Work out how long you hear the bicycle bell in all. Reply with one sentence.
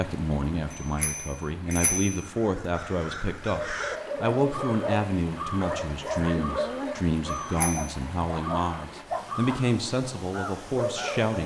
The bicycle bell can be heard for 2 seconds in total.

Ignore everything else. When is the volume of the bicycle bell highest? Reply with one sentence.
The loudest moment of the bicycle bell is at 2 seconds.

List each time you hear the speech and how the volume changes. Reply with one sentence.
The speech can be heard from 0.0 to 11.4 s, at a steady volume.